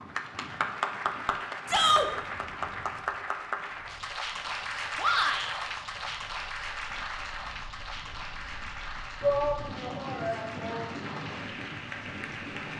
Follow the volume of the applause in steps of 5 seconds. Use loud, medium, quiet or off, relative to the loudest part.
loud, loud, medium.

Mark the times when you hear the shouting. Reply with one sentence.
You can hear the shouting from 1.6 to 2.1 s, from 5.0 to 5.5 s and from 9.2 to 10.9 s.